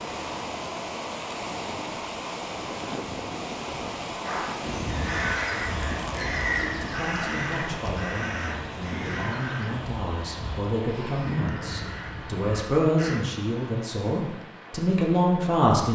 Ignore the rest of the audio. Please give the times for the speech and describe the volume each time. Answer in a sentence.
You can hear the speech from 6.7 to 15.8 s, getting louder.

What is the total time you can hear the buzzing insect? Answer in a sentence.
The buzzing insect can't be heard in this clip.